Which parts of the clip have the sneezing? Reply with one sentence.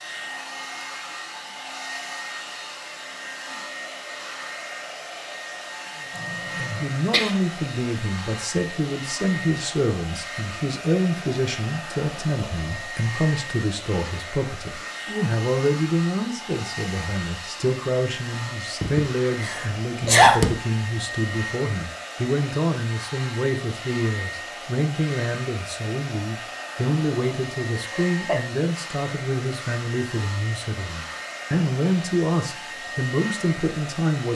The sneezing can be heard from 6.2 to 7.3 s, from 18.8 to 20.5 s and from 27.9 to 28.4 s.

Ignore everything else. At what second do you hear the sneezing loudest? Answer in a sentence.
The volume of the sneezing peaks at 20 seconds.